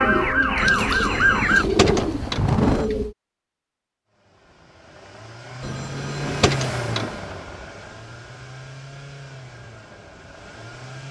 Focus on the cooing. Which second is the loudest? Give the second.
2 s.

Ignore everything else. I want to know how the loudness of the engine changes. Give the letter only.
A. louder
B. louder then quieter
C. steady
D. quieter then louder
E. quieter
B.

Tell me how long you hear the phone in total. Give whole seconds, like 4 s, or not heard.
4 s.